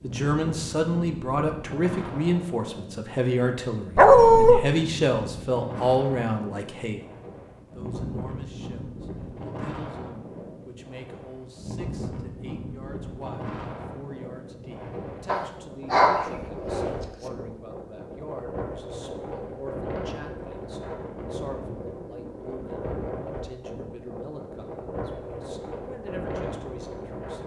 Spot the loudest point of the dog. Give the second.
4 s.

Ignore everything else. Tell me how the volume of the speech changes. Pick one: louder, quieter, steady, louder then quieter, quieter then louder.
quieter.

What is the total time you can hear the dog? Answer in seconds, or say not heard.
2 s.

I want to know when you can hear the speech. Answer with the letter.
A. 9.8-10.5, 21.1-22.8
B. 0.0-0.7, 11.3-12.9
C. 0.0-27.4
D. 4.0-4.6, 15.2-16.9
C.